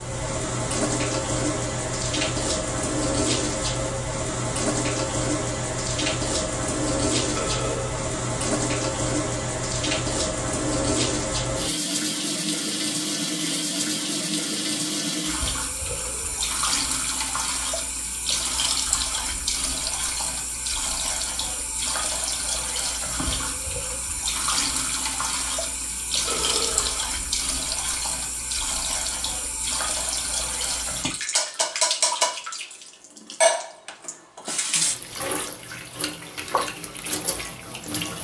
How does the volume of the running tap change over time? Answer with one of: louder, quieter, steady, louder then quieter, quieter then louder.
steady.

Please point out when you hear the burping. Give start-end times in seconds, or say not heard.
7.3-8.1, 15.8-16.5, 26.2-27.1.